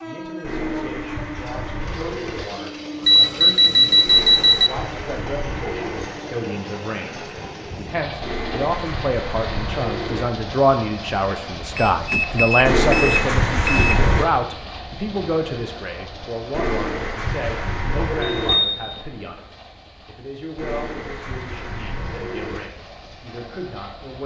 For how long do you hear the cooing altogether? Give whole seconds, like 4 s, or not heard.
12 s.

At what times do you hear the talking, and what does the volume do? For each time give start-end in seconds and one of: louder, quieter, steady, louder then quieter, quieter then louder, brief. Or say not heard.
0.0-24.2 louder then quieter.